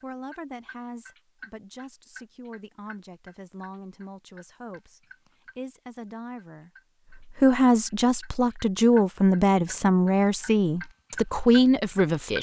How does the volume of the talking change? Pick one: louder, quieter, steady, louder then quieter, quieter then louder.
louder.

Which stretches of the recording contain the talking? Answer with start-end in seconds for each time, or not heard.
0.0-6.7, 7.3-12.3.